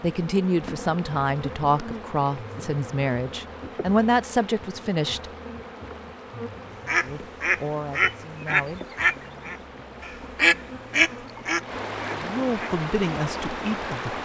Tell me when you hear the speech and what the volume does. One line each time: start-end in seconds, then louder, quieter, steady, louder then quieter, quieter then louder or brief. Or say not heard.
0.0-5.3 steady
7.0-8.8 brief
12.1-14.2 brief.